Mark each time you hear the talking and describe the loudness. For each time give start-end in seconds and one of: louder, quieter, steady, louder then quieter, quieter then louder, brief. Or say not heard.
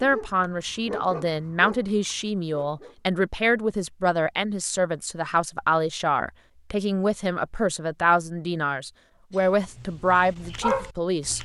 0.0-11.4 steady.